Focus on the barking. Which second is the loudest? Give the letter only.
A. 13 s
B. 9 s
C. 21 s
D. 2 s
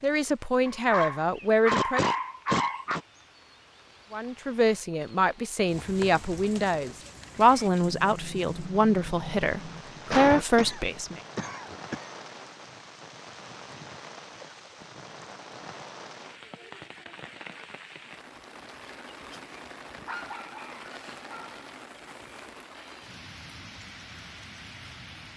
D.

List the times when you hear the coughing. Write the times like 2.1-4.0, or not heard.
10.1-12.1.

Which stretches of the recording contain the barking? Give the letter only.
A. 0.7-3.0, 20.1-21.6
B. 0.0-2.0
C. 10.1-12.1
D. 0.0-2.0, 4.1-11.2
A.